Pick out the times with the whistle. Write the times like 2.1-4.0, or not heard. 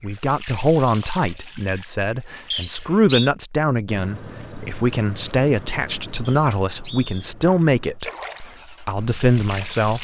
2.5-3.3, 6.2-7.3.